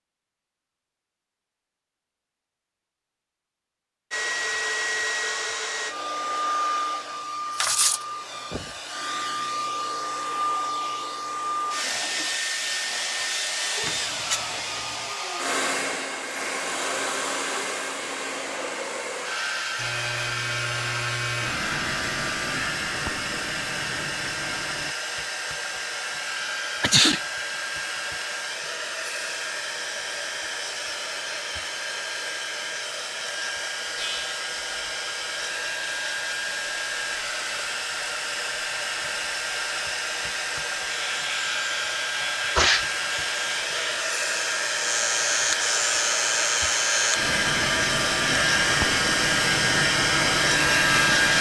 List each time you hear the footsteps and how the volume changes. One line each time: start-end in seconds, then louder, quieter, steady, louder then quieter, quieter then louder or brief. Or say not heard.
not heard.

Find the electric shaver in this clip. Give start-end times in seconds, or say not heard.
19.8-24.9, 34.0-51.3.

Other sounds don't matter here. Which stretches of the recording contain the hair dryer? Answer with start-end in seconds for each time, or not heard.
4.1-51.3.